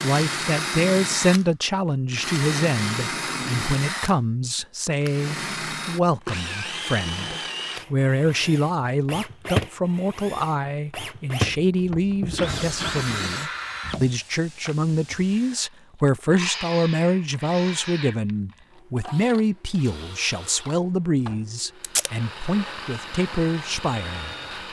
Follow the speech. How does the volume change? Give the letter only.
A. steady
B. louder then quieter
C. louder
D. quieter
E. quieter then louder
A.